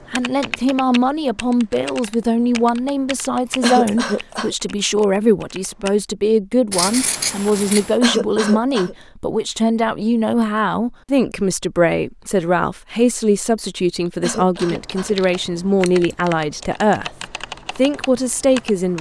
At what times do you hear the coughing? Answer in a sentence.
You can hear the coughing from 3.6 to 4.5 s, from 8.0 to 8.9 s and from 14.2 to 15.2 s.